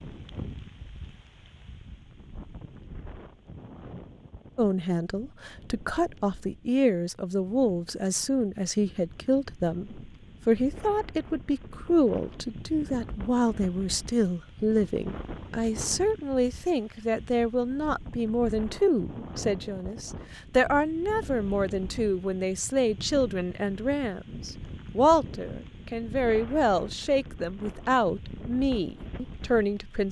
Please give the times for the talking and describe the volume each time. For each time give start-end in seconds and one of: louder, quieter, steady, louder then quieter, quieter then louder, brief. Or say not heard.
4.5-30.0 steady.